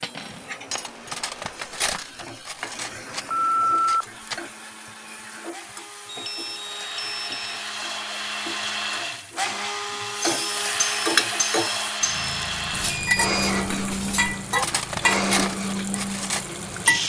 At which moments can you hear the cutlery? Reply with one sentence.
The cutlery can be heard from 0.0 to 4.5 s and from 10.2 to 16.4 s.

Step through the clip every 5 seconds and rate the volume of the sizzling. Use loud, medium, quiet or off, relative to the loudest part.
quiet, quiet, loud, loud.